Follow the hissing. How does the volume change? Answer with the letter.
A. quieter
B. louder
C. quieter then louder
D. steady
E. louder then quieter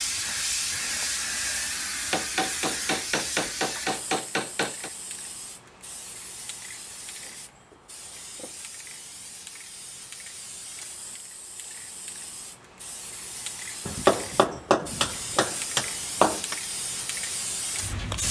C.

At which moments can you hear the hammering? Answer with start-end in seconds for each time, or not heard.
2.1-4.9, 13.8-16.6.